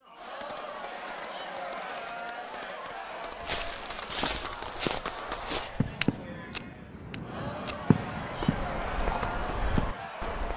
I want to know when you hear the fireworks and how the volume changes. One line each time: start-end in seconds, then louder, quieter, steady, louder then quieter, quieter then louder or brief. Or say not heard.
0.1-10.1 louder.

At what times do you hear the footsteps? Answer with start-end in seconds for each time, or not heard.
3.4-10.5.